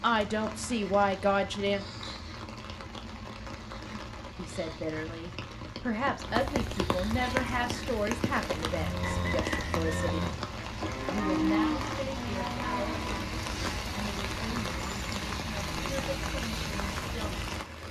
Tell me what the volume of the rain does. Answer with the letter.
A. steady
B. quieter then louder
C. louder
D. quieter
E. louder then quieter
C.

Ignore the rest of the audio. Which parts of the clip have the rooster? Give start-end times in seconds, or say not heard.
9.0-10.1.